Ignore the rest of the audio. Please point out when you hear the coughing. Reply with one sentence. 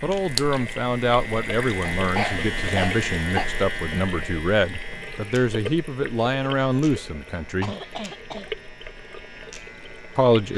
The coughing can be heard from 1.8 to 3.5 s and from 7.6 to 8.5 s.